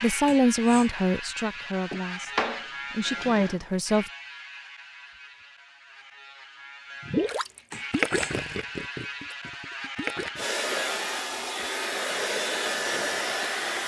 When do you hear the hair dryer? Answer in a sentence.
The hair dryer can be heard from 10.3 to 13.8 s.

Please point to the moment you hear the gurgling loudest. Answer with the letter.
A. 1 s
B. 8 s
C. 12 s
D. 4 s
B.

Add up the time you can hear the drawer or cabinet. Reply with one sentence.
The drawer or cabinet can be heard for 2 seconds in total.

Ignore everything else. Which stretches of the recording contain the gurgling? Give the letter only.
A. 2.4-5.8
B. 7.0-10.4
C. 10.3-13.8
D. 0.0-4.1
B.